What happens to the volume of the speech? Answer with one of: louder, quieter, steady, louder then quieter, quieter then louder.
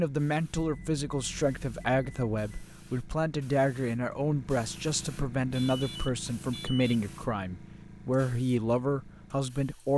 steady.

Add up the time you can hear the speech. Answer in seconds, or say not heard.
10 s.